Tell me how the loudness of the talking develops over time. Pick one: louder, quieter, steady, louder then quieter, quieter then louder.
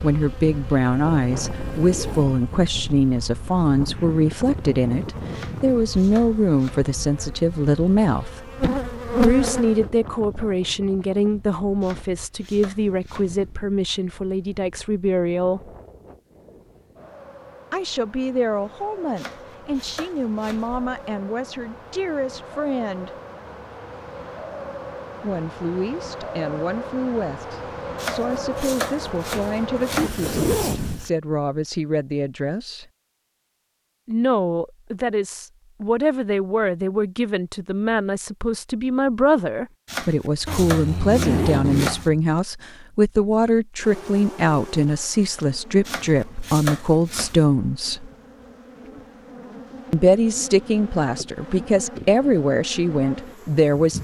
quieter then louder.